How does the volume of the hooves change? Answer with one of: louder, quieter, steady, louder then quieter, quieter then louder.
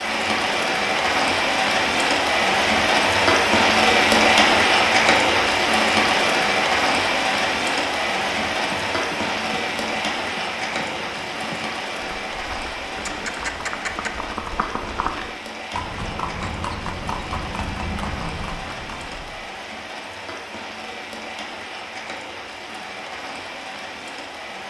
louder.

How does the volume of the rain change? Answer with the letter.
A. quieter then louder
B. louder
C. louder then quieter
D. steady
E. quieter
E.